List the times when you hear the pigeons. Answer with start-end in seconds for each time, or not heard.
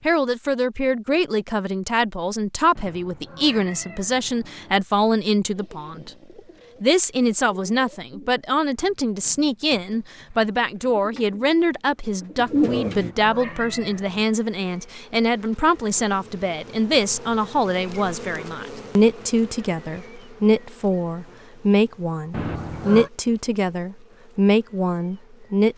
5.5-13.1.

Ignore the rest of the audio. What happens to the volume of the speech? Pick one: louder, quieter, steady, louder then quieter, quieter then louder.
steady.